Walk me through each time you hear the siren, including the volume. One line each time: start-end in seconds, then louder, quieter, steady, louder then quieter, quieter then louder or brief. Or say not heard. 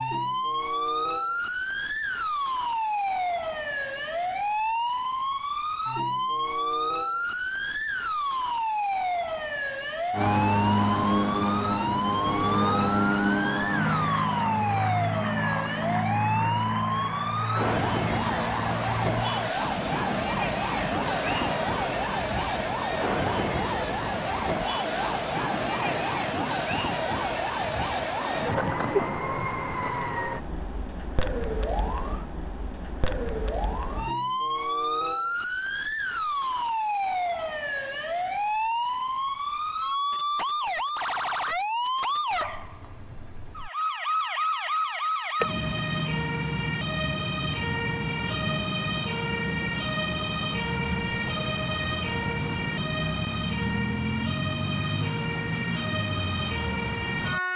0.0-57.5 steady.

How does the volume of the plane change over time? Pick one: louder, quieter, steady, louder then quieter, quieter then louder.
quieter.